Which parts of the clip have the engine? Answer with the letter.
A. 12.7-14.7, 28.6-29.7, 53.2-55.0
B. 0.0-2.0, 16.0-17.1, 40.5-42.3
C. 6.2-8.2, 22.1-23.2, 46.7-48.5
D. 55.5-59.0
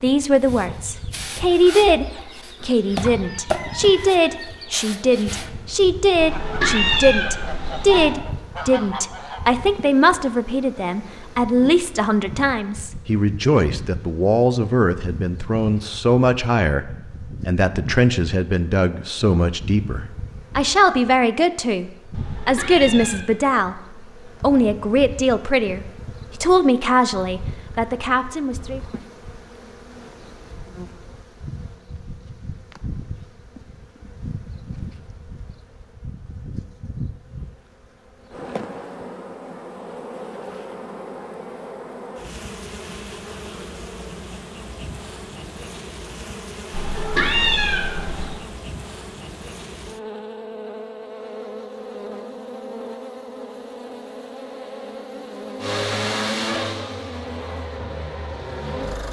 D.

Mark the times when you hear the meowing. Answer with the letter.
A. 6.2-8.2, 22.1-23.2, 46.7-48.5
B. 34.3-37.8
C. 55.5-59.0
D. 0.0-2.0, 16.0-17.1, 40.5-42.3
A.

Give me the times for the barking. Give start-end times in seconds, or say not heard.
not heard.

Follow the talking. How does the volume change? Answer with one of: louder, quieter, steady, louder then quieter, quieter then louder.
steady.